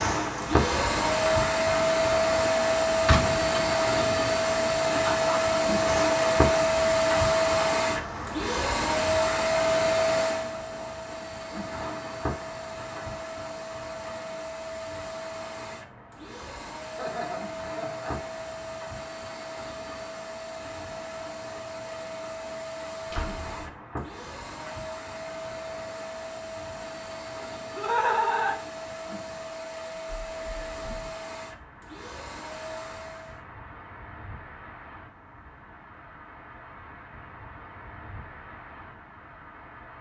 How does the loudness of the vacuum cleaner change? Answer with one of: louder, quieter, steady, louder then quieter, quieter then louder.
quieter.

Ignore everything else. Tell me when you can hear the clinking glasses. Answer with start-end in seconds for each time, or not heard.
not heard.